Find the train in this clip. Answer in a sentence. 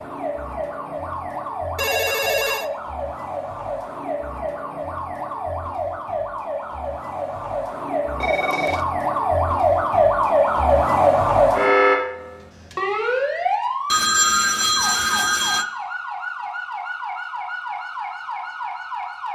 The train can't be heard in this clip.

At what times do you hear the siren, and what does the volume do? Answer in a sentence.
You can hear the siren from 0.0 to 19.3 s, getting louder then quieter.